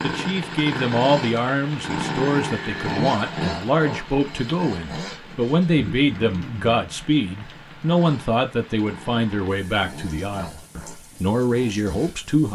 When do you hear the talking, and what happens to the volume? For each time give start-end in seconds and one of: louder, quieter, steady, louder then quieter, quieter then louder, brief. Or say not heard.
0.0-12.4 steady.